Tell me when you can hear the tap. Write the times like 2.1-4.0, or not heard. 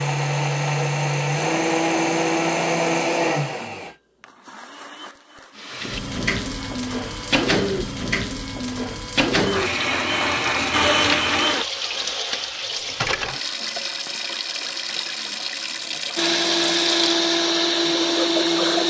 5.5-18.8.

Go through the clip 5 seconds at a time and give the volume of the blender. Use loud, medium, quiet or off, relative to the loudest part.
loud, quiet, loud, loud.